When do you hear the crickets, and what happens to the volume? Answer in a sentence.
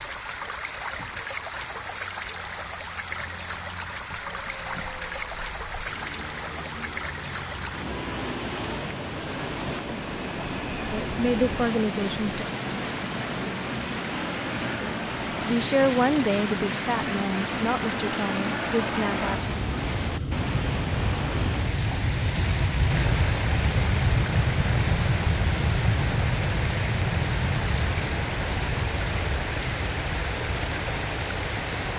The crickets can be heard from 0.0 to 31.9 s, at a steady volume.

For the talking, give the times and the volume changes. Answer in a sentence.
The talking can be heard briefly from 10.9 to 12.4 s; and from 14.8 to 19.4 s, getting quieter.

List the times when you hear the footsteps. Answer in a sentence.
You can't hear the footsteps here.